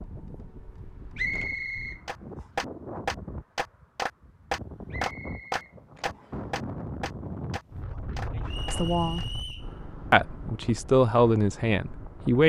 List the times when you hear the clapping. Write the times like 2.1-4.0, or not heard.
2.0-9.2.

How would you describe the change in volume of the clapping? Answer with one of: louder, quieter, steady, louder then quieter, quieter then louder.
quieter.